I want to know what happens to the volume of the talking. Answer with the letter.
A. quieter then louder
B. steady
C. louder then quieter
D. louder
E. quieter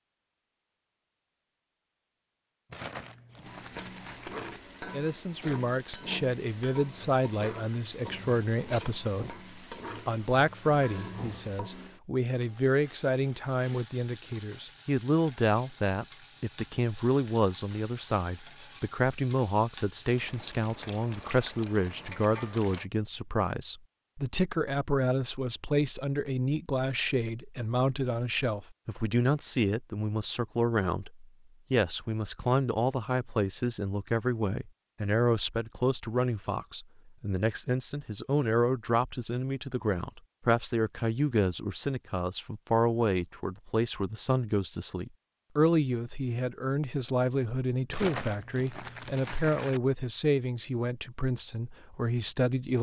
B.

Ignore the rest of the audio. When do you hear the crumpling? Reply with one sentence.
You can hear the crumpling from 2.7 to 4.6 s and from 47.9 to 49.8 s.